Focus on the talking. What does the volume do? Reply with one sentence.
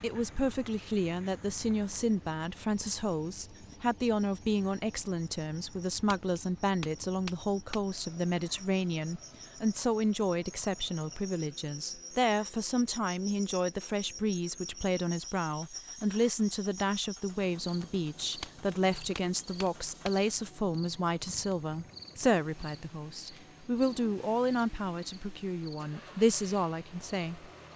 The loudness of the talking stays about the same.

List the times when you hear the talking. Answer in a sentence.
You can hear the talking from 0.0 to 27.4 s.